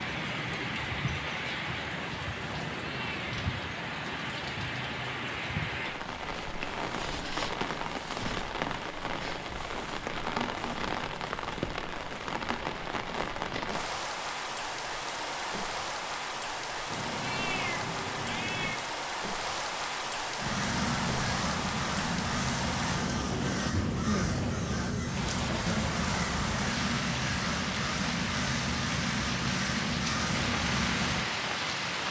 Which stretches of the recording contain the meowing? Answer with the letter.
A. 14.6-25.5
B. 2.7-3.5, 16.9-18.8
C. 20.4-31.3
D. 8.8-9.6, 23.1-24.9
B.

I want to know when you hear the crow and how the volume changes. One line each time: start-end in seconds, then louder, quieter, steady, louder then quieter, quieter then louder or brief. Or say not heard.
20.4-31.3 steady.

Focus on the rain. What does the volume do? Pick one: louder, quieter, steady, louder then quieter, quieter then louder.
steady.